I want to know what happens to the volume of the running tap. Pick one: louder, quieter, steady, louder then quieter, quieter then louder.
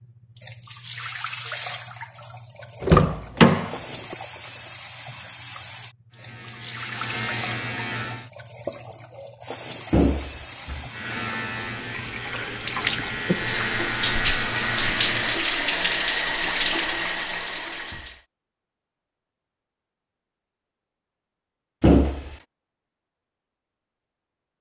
louder.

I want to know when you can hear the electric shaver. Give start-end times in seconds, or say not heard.
6.1-8.3, 10.9-15.4.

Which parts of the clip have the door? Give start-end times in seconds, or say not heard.
2.8-4.2, 9.9-10.9, 21.8-22.4.